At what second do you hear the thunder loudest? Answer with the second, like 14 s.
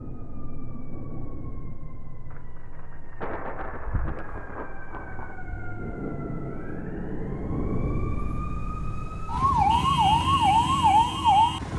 3 s.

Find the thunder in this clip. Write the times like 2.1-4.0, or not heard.
2.3-5.4.